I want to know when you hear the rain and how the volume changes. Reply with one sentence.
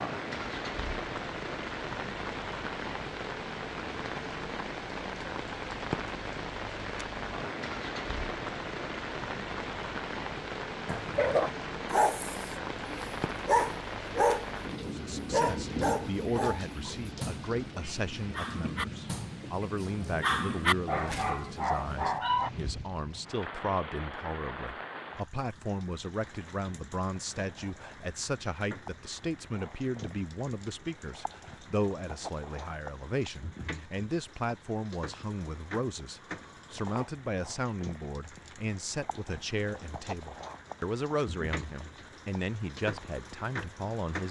The rain can be heard from 0.0 to 44.2 s, getting quieter.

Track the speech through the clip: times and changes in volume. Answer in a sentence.
The speech can be heard from 14.8 to 44.2 s, at a steady volume.